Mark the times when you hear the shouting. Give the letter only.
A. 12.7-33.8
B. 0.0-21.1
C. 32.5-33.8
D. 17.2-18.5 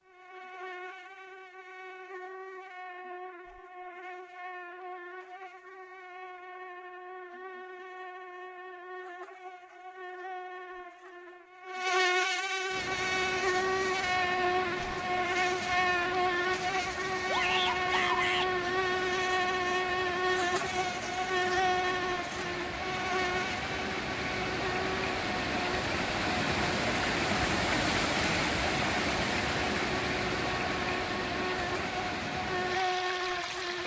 D.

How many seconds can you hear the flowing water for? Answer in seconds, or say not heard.
21 s.